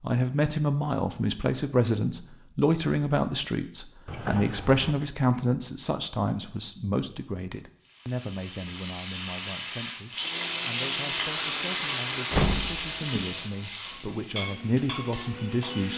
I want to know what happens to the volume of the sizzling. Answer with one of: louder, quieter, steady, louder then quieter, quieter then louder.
louder then quieter.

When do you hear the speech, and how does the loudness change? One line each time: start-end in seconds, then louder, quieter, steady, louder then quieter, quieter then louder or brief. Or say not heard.
0.0-15.9 quieter then louder.